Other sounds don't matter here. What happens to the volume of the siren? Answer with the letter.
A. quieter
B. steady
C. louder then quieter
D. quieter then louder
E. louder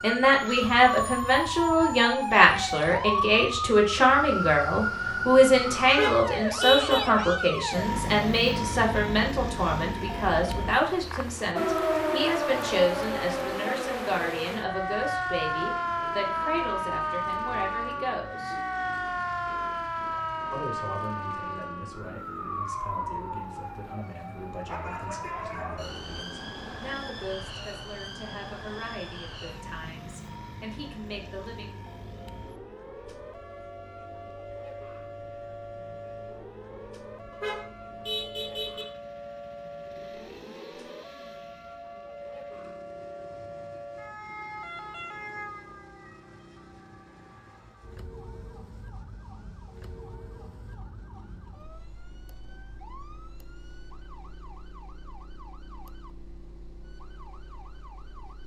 A.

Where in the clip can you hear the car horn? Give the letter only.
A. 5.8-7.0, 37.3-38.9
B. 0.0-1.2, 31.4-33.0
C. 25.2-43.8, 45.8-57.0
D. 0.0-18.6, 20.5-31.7
A.